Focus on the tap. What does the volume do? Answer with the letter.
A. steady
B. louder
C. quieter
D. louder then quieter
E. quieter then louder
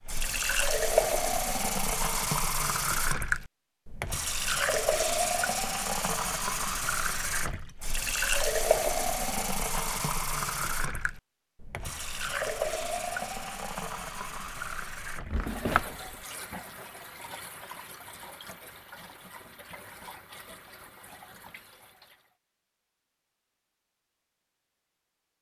C.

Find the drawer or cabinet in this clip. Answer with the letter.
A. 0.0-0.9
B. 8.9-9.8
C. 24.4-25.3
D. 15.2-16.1
D.